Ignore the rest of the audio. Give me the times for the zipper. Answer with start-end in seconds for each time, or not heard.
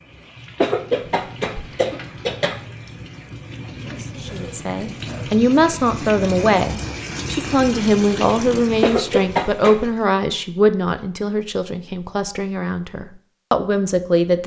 3.8-4.7.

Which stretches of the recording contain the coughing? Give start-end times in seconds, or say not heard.
0.6-2.5, 8.8-9.8.